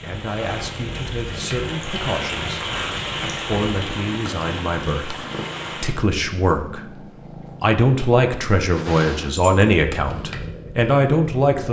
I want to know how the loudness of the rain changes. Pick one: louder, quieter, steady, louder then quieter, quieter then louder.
louder then quieter.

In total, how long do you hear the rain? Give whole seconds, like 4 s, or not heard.
6 s.